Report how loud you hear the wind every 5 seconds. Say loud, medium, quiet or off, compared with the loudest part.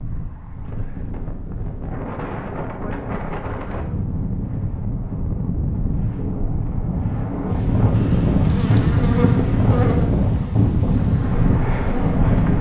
medium, loud, loud.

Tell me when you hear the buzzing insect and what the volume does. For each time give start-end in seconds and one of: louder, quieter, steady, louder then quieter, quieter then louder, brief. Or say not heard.
8.0-12.3 quieter.